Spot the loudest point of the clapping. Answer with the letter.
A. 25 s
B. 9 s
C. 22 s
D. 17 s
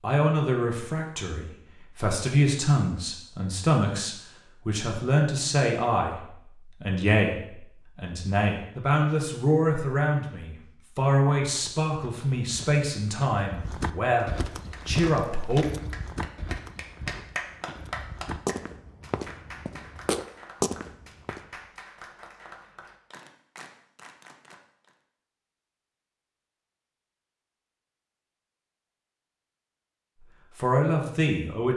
D.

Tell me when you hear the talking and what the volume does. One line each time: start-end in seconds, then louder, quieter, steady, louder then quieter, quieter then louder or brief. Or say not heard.
0.0-15.7 steady
30.6-31.7 brief.